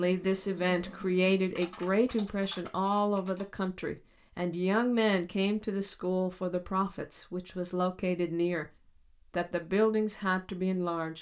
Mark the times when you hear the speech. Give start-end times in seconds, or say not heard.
0.0-8.7, 9.3-11.1.